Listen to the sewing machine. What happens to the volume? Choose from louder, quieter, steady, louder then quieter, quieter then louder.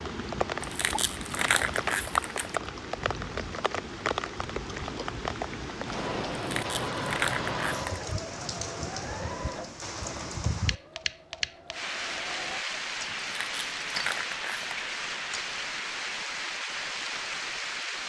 quieter.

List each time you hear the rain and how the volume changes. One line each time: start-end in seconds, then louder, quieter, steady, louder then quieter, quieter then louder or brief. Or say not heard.
0.0-18.0 steady.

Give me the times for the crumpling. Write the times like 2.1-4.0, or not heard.
0.6-2.6, 6.3-8.1, 13.2-14.8.